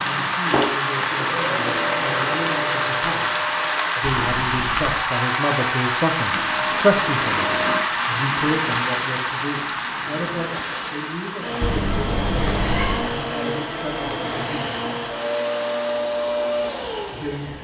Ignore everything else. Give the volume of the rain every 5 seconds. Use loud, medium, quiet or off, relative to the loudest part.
loud, loud, medium, quiet.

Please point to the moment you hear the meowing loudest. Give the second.
13 s.